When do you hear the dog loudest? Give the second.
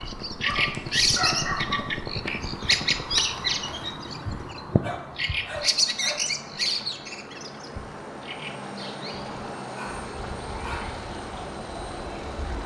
1 s.